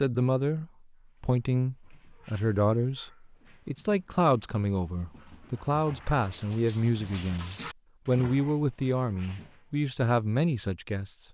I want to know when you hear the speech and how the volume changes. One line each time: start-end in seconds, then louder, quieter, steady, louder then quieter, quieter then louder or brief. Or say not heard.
0.0-11.3 steady.